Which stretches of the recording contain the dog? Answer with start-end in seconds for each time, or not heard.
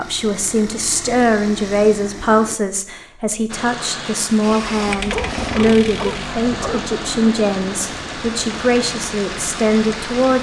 5.0-7.0.